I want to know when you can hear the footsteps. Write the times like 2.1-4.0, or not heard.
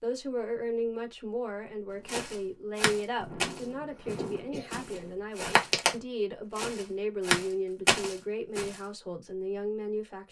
2.0-6.0, 6.5-8.8.